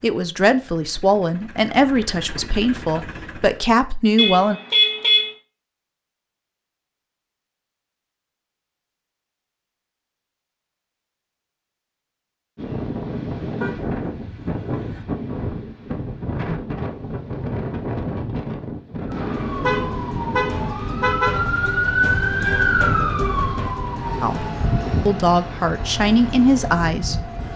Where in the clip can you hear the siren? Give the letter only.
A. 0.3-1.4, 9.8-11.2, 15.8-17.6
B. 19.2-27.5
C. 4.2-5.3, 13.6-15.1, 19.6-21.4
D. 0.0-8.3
B.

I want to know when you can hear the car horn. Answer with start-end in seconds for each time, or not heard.
4.2-5.3, 13.6-15.1, 19.6-21.4.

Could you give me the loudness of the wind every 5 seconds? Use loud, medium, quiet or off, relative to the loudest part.
off, off, loud, loud, medium, medium.